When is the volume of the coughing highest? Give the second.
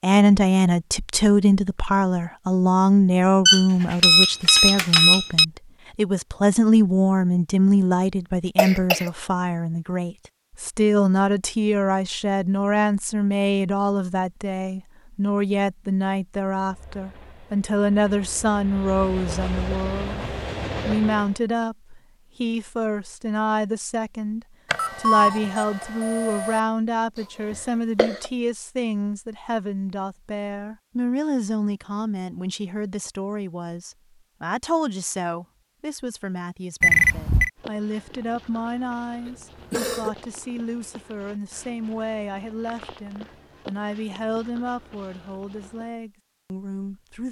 9 s.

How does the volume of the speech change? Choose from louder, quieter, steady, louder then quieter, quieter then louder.
quieter.